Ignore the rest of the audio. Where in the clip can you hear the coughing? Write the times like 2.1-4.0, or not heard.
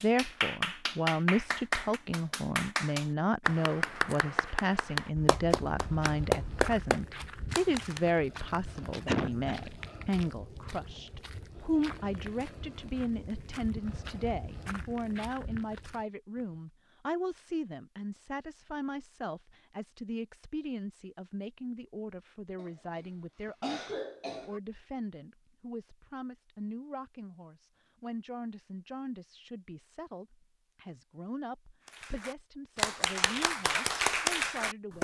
9.1-9.7, 22.6-24.6.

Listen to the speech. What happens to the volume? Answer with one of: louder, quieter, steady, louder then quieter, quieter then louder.
quieter.